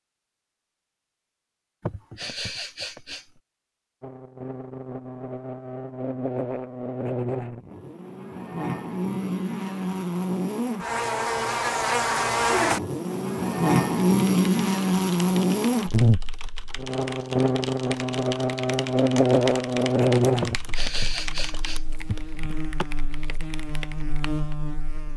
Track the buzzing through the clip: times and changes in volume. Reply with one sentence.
You can hear the buzzing from 4.0 to 25.1 s, getting louder then quieter.